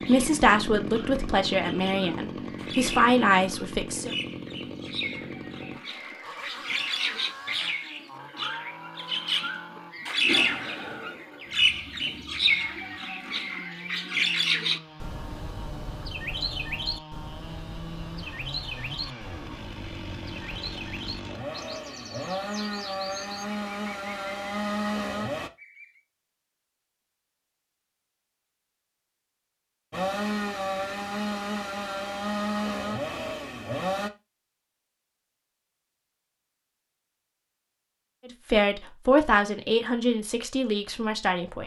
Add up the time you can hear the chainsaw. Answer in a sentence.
You can hear the chainsaw for 30 seconds altogether.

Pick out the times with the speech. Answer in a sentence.
You can hear the speech from 0.1 to 4.1 s and from 38.2 to 41.6 s.